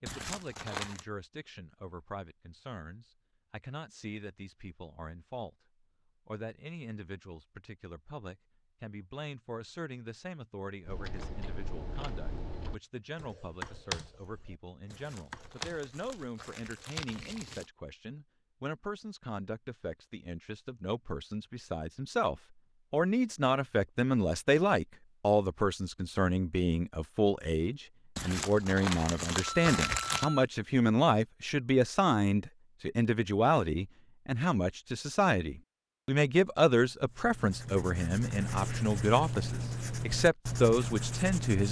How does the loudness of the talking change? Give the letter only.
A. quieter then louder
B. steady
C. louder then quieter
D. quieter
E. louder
E.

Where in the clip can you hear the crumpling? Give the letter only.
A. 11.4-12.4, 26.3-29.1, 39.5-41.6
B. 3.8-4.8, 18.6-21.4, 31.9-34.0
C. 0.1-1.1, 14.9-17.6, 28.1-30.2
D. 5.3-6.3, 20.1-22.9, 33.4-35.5
C.